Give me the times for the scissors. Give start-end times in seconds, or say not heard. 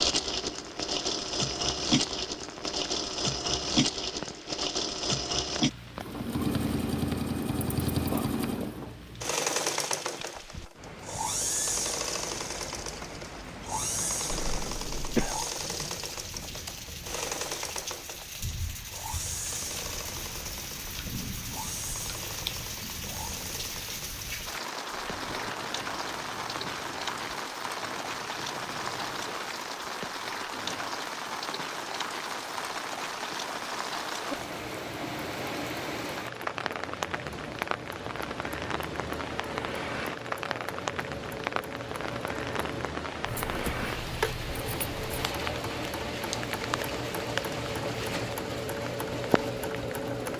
43.2-45.2.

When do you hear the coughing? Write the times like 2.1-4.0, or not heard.
14.3-15.4.